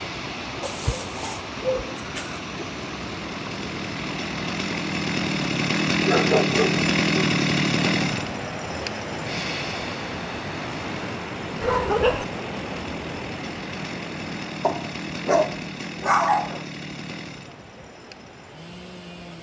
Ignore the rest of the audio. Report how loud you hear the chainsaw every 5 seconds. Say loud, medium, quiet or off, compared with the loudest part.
medium, loud, quiet, quiet.